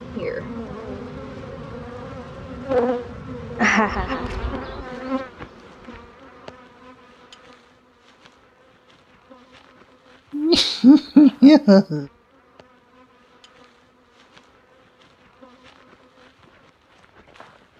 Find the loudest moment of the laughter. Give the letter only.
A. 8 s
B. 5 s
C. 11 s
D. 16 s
C.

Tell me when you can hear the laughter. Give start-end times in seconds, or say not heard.
3.5-4.3, 10.3-12.1.